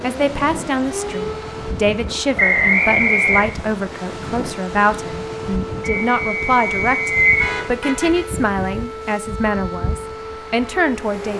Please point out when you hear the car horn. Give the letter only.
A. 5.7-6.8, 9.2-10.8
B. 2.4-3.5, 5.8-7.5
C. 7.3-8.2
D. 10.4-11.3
C.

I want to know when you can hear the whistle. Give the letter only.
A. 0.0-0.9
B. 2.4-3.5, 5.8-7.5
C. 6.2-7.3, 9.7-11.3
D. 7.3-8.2
B.